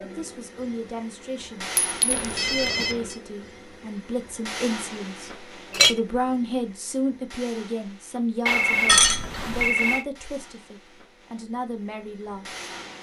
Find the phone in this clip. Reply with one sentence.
The phone can be heard from 2.1 to 3.2 s and from 8.4 to 10.1 s.